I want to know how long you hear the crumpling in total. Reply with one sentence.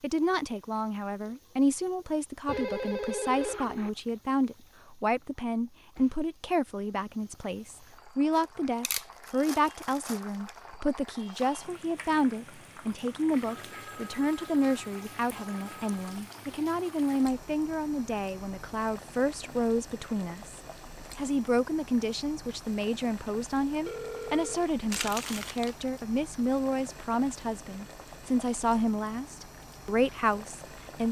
The crumpling can be heard for 3 seconds in total.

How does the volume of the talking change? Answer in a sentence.
The volume of the talking stays about the same.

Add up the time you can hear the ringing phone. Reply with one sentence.
You can hear the ringing phone for 5 seconds altogether.